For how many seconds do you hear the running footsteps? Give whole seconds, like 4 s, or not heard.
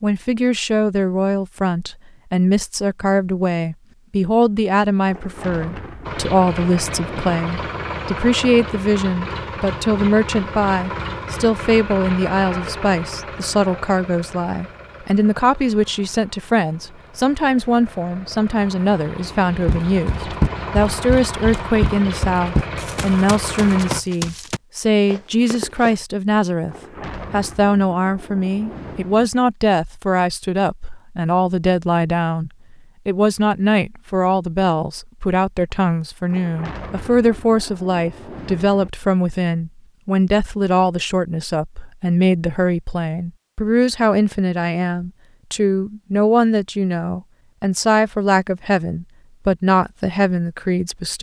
6 s.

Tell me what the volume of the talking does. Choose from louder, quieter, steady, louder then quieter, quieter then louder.
steady.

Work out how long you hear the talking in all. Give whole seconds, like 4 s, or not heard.
51 s.